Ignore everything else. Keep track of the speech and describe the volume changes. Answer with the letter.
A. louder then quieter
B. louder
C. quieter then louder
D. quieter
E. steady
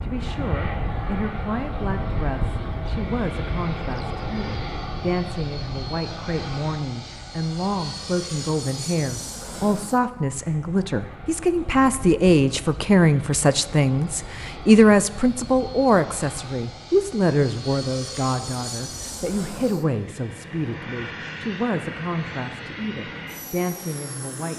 A.